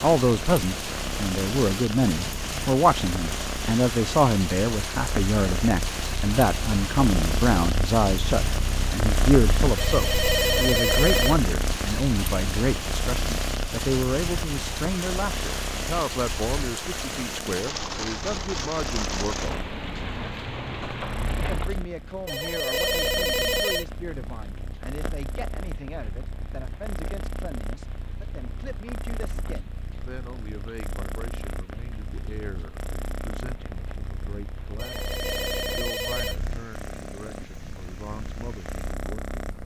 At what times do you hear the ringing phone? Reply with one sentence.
You can hear the ringing phone from 9.8 to 11.3 s, from 22.2 to 23.9 s and from 34.8 to 36.4 s.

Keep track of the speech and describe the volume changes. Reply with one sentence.
The loudness of the speech goes down.